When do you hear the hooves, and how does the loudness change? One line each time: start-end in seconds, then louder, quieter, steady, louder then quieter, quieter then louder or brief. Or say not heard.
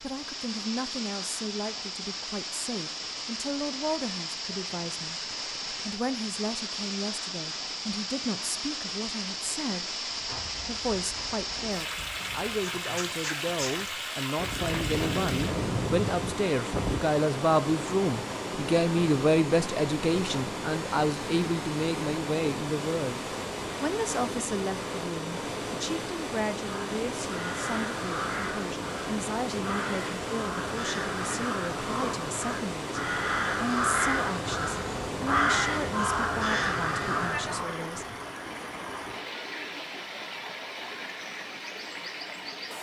10.1-17.0 louder.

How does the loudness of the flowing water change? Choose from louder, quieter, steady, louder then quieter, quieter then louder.
steady.